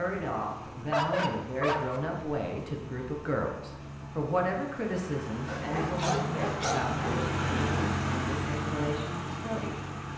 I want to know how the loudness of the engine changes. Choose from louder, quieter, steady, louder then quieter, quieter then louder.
louder.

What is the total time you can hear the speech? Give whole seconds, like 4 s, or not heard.
10 s.